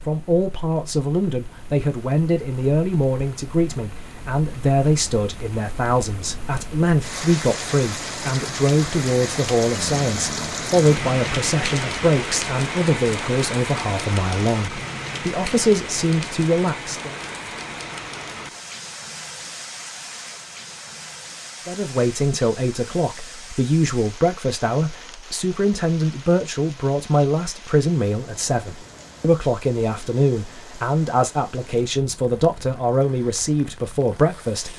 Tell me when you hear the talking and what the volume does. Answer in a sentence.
The talking can be heard from 0.1 to 17.1 s, at a steady volume; and from 21.6 to 34.7 s, at a steady volume.